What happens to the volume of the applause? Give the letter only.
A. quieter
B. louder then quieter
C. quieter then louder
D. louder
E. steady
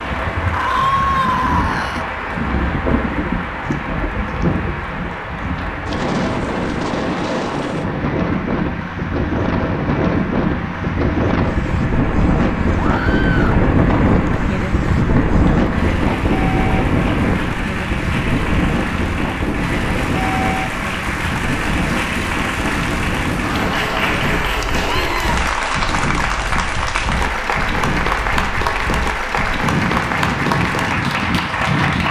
D.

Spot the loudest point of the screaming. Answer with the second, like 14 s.
1 s.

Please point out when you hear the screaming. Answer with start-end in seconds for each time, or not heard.
0.5-2.0, 12.8-13.6, 24.8-25.4.